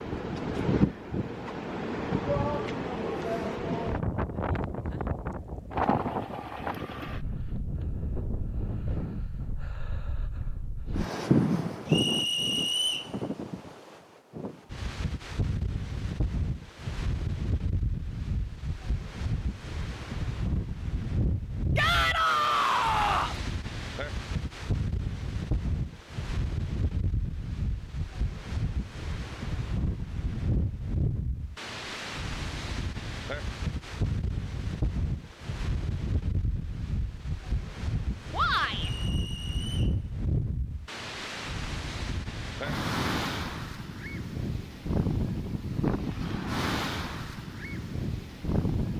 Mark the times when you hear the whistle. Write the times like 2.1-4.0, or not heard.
11.8-13.1, 38.8-40.0.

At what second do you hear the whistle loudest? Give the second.
13 s.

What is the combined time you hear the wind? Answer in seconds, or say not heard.
49 s.